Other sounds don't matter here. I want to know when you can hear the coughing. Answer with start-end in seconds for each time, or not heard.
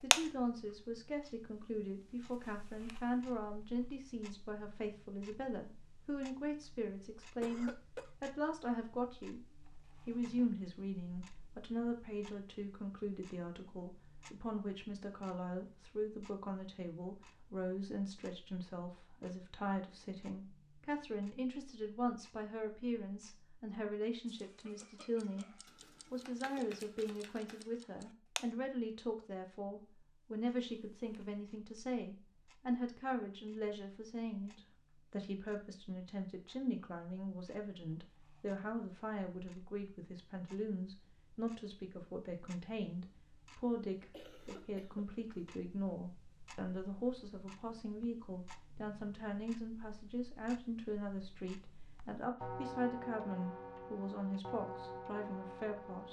7.4-8.1, 24.4-25.6, 44.1-45.1.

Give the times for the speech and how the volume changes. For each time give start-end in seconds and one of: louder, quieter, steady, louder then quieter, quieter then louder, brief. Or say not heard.
0.0-56.0 steady.